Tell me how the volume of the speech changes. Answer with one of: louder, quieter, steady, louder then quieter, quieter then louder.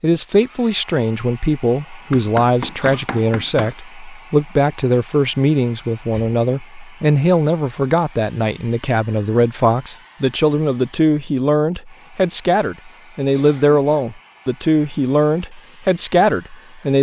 steady.